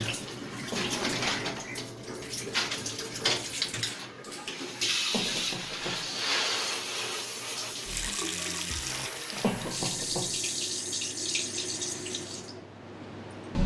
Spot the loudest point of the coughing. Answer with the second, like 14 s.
10 s.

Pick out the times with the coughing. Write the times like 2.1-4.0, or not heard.
0.7-1.6, 5.1-6.0, 9.4-10.3.